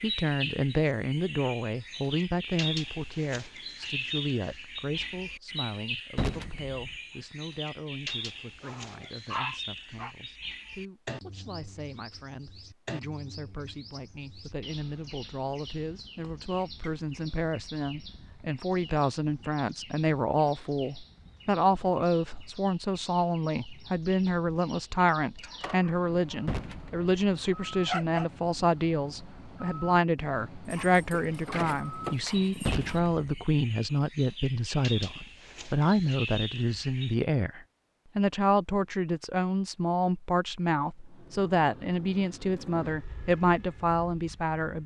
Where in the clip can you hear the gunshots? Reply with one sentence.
You can hear the gunshots from 6.2 to 7.0 s, from 26.4 to 27.1 s and from 32.6 to 33.5 s.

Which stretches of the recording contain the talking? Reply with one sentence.
You can hear the talking from 0.0 to 44.8 s.